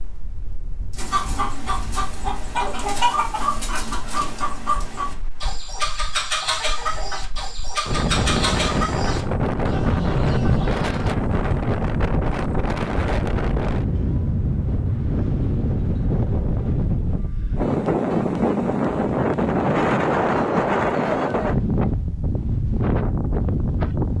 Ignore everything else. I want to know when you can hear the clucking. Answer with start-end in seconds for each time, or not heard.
0.9-11.2.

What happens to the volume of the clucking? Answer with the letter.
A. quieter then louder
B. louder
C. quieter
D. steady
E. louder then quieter
D.